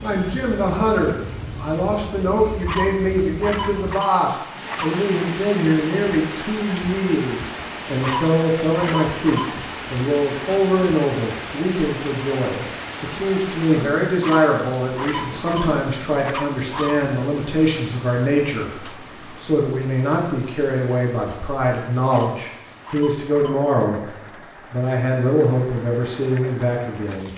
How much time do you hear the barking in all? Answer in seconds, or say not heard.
8 s.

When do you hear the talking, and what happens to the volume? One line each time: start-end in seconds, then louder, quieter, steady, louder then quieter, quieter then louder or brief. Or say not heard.
0.0-27.3 steady.